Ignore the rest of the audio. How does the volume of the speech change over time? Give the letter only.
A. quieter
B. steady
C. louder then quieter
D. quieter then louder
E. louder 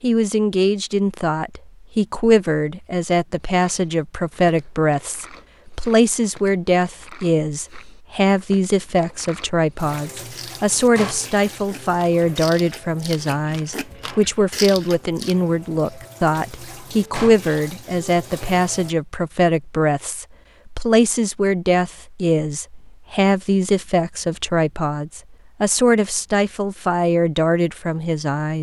B.